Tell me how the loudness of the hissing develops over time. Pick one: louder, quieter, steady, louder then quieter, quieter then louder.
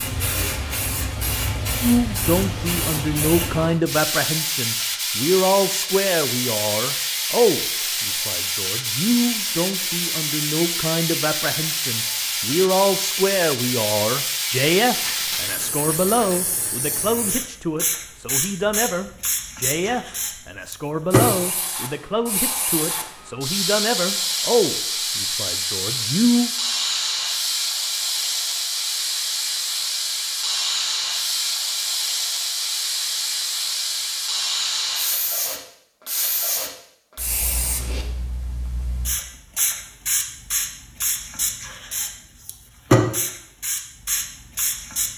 steady.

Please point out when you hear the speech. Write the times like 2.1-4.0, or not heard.
1.8-26.5.